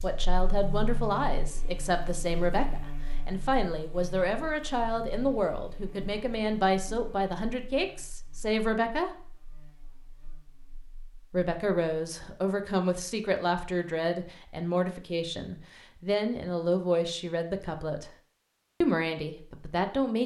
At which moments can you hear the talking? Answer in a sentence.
You can hear the talking from 0.0 to 9.1 s, from 11.3 to 18.1 s and from 18.8 to 20.2 s.